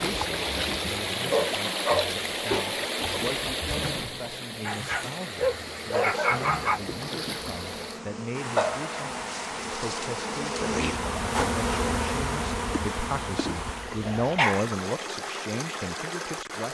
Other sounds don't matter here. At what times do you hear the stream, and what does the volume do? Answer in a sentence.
The stream can be heard from 0.0 to 16.6 s, getting quieter.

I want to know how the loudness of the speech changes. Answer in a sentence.
The volume of the speech goes up.